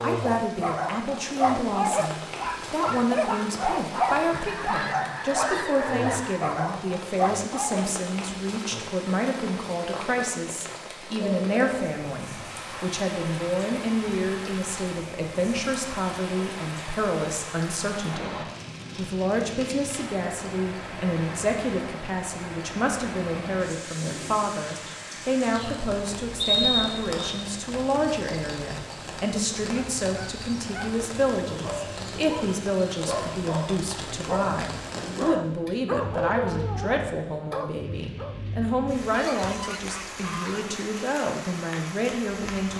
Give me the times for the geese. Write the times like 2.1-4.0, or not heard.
4.3-6.5, 39.1-40.8.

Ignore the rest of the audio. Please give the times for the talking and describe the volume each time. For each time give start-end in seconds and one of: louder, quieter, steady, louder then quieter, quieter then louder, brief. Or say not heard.
0.0-42.7 steady.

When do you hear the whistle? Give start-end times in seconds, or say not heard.
26.4-27.4.